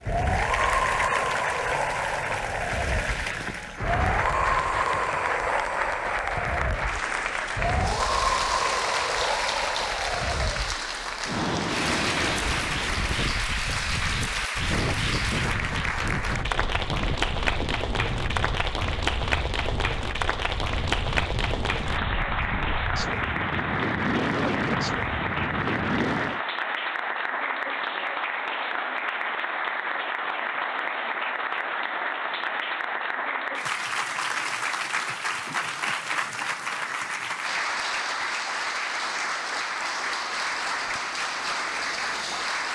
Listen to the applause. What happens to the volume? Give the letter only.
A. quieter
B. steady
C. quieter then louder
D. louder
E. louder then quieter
B.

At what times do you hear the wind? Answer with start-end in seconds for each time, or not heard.
0.0-26.4.